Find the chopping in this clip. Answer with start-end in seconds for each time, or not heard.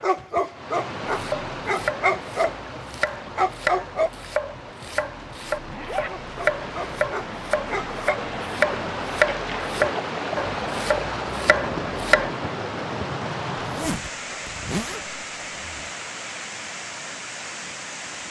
1.1-12.3.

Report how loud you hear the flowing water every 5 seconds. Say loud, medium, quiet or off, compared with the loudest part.
medium, loud, loud, medium.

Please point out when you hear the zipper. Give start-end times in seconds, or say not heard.
5.7-6.2, 13.6-15.9.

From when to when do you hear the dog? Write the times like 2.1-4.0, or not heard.
0.0-4.1, 6.0-8.2.